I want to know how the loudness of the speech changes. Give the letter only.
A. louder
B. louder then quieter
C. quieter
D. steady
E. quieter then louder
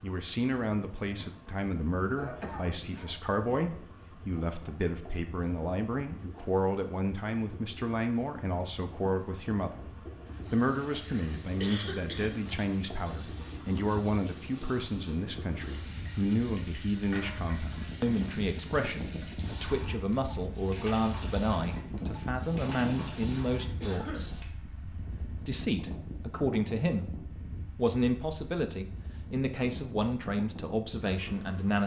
D.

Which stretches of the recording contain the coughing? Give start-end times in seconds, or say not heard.
2.1-3.6, 11.6-12.4, 23.8-24.4.